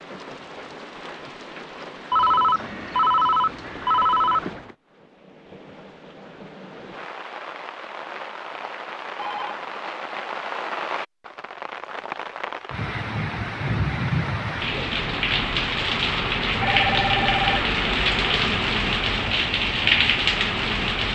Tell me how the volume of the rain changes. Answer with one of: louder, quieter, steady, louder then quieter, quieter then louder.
louder.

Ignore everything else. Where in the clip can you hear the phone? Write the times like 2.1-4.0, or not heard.
2.1-4.8, 9.2-9.7, 16.6-17.8.